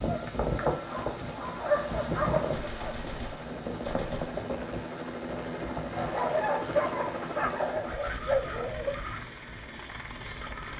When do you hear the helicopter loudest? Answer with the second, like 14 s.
7 s.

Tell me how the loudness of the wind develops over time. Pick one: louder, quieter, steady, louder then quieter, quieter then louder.
quieter.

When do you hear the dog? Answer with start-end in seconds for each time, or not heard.
0.1-3.0, 6.0-8.9.